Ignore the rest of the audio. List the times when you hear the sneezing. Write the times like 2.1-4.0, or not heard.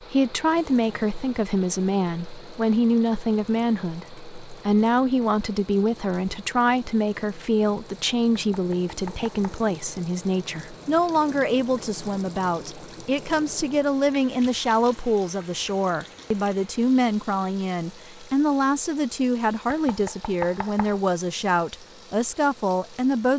not heard.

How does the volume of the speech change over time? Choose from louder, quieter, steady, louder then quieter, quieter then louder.
steady.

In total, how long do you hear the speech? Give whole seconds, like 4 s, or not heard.
23 s.